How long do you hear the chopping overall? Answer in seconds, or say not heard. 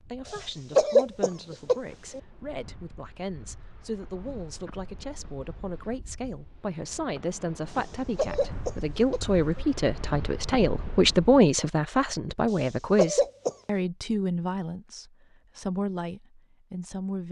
not heard.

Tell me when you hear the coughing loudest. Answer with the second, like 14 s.
1 s.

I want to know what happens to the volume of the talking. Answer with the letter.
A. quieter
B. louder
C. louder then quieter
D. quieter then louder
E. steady
C.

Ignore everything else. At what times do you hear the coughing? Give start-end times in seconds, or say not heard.
0.2-2.2, 7.7-9.7, 12.5-13.6.